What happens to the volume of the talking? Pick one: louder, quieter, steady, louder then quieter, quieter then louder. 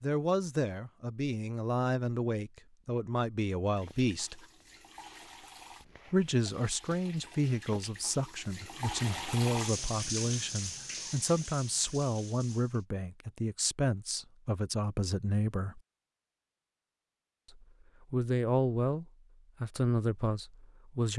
steady.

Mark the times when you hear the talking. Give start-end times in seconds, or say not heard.
0.0-4.5, 6.1-15.8, 17.5-21.1.